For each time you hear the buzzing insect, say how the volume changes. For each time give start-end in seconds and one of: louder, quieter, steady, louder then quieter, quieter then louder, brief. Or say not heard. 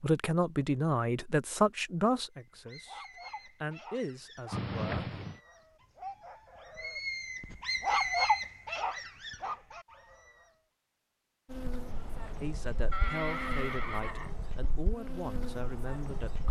11.5-16.4 steady.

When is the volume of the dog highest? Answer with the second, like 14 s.
8 s.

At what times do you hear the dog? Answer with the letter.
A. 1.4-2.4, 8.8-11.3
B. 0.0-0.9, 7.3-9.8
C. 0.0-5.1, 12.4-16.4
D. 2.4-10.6
D.